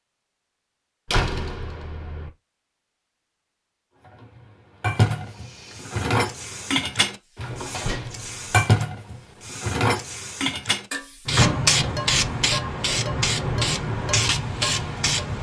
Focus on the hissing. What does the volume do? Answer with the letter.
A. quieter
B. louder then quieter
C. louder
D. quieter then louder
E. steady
C.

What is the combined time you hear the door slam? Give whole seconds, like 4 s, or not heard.
3 s.